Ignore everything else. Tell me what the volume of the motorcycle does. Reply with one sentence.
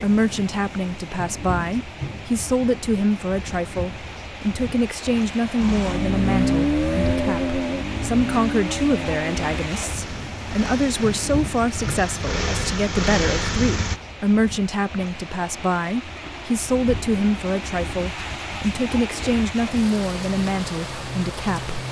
The volume of the motorcycle goes down, then up.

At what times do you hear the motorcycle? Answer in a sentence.
You can hear the motorcycle from 5.6 to 14.0 s.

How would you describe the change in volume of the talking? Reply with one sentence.
The volume of the talking stays about the same.